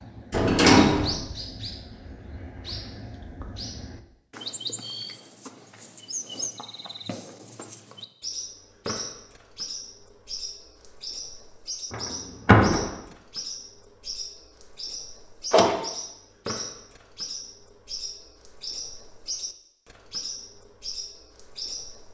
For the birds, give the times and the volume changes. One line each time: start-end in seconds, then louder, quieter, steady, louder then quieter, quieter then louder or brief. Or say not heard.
0.0-22.0 steady.